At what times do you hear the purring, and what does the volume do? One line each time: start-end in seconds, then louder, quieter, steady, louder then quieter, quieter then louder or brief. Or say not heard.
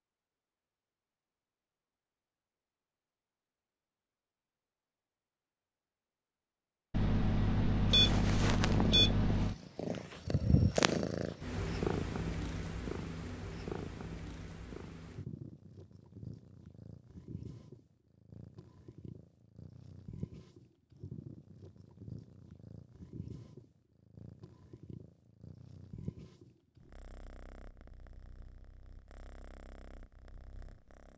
7.9-31.1 quieter.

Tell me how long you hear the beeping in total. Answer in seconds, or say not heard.
3 s.